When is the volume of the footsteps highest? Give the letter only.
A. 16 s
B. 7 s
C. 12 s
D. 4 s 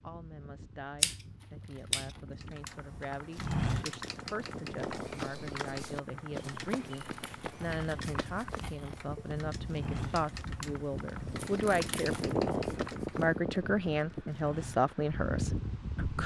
D.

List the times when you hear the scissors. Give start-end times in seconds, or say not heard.
1.0-2.1.